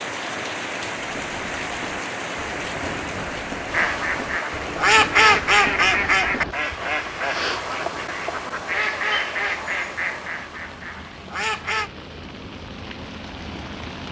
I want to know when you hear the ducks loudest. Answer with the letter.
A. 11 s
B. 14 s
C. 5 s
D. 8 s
C.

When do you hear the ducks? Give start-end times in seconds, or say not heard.
3.7-11.9.